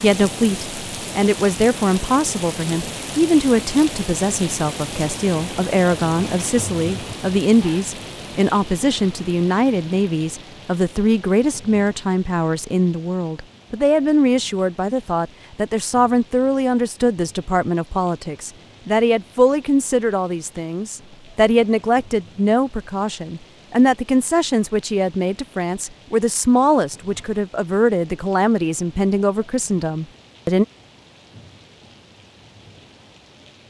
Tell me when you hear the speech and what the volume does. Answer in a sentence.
The speech can be heard from 0.0 to 30.6 s, at a steady volume.